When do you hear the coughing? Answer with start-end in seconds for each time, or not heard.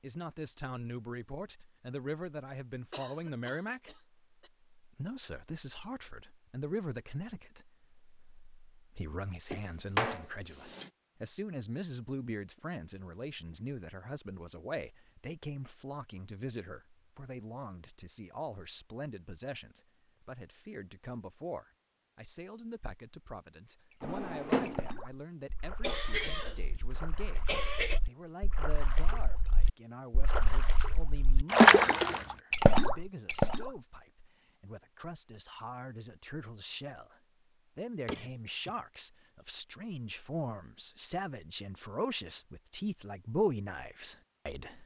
2.9-4.5, 25.8-28.0, 38.1-38.8.